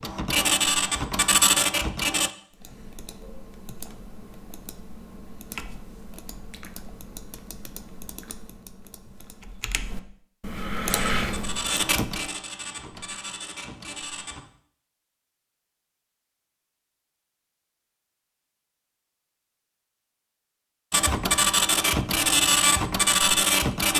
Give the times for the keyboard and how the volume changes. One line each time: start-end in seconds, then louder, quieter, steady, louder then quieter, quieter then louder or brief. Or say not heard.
2.5-12.1 louder.